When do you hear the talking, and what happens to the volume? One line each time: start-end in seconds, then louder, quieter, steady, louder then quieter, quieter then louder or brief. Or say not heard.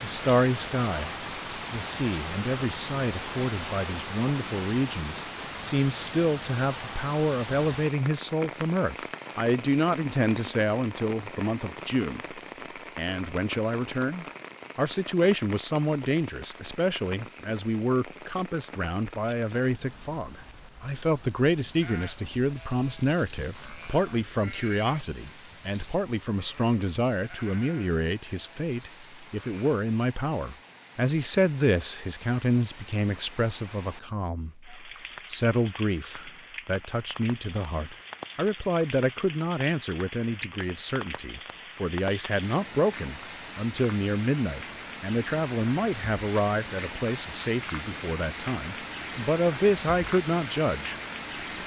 0.0-51.0 steady.